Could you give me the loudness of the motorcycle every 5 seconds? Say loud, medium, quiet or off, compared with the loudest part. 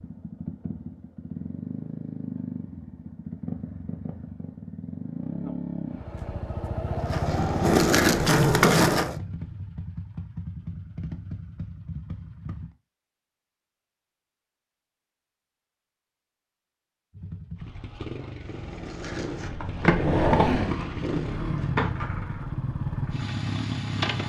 medium, loud, medium, medium, loud.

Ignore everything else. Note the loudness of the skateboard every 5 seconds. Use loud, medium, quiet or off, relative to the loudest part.
off, loud, off, medium, medium.